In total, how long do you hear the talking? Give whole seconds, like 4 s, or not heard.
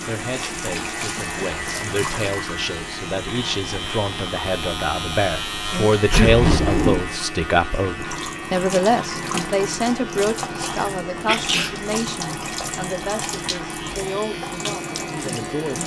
16 s.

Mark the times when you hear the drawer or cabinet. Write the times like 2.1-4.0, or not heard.
6.0-7.0.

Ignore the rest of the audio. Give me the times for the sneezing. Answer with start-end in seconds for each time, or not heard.
5.7-6.3, 11.2-11.8.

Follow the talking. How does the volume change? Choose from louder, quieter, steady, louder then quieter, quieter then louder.
louder then quieter.